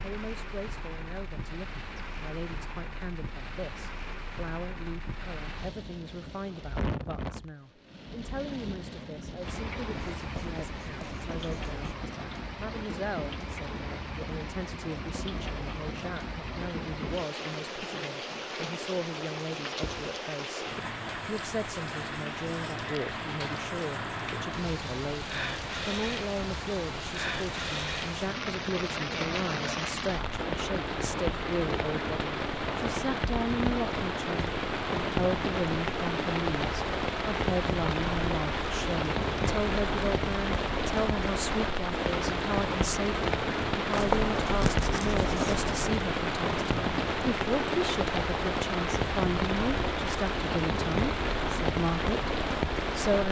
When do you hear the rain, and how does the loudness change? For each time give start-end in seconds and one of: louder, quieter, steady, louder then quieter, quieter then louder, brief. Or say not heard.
0.0-53.2 louder.